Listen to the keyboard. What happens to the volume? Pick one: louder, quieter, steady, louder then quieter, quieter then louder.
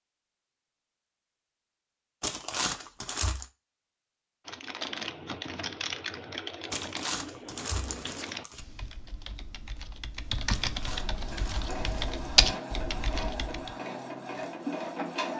quieter then louder.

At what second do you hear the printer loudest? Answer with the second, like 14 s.
15 s.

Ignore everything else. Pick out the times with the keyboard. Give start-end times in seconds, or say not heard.
4.5-13.8.